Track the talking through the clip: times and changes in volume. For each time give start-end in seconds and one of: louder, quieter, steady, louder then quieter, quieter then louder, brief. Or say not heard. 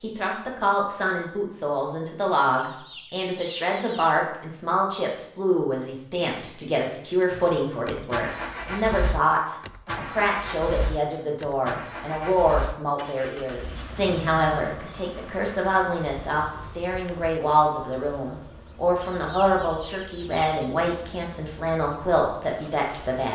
0.0-23.3 steady.